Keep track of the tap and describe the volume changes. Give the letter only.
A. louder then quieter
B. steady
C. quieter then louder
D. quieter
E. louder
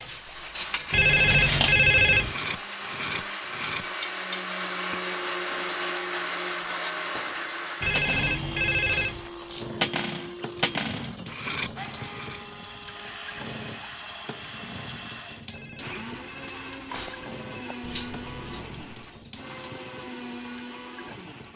D.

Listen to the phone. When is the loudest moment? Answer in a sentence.
The loudest moment of the phone is at 2 seconds.